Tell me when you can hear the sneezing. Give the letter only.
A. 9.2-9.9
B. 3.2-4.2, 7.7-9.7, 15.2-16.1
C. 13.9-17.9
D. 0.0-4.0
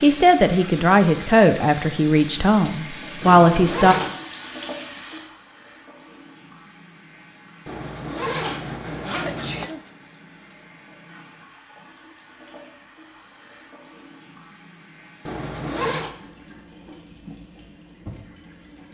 A.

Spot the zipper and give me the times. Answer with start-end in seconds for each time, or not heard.
3.2-4.2, 7.7-9.7, 15.2-16.1.